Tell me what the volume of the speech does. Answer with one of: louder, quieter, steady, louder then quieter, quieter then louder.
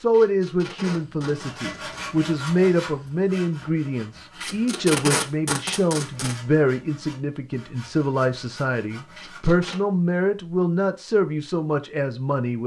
steady.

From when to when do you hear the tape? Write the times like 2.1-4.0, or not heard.
0.1-2.1, 4.4-6.3, 9.2-9.8.